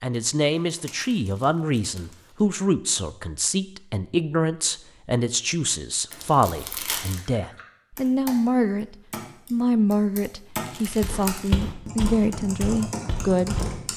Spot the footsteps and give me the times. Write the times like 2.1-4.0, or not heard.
11.0-13.8.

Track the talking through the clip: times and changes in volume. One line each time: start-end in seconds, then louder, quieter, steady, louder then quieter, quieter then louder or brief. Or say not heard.
0.0-13.9 steady.